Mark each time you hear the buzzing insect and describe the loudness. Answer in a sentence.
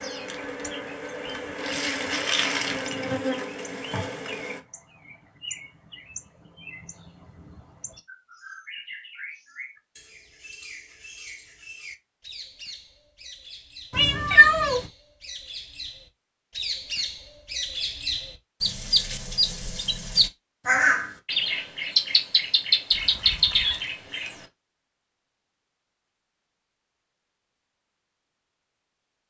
You can hear the buzzing insect from 0.0 to 4.6 s, getting louder then quieter.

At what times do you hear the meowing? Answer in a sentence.
You can hear the meowing from 13.9 to 14.8 s.